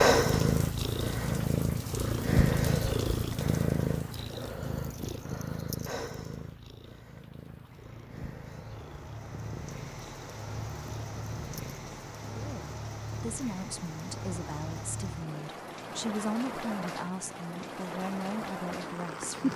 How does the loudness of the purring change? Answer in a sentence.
The loudness of the purring goes down.